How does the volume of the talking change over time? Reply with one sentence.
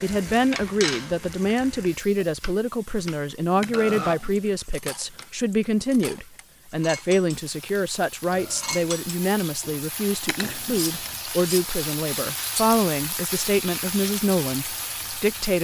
The loudness of the talking stays about the same.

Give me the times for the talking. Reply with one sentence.
The talking can be heard from 0.0 to 15.6 s.